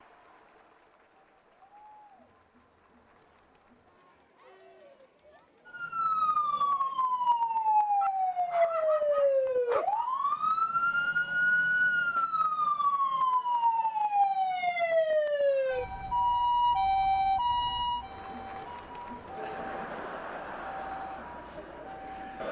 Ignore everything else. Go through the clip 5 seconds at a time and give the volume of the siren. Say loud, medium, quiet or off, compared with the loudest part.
off, loud, loud, loud, quiet.